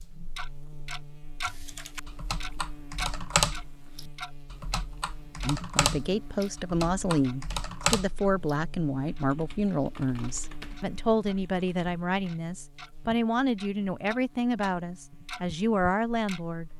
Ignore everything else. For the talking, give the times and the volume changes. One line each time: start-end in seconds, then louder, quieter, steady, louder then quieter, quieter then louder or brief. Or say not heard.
5.4-16.7 steady.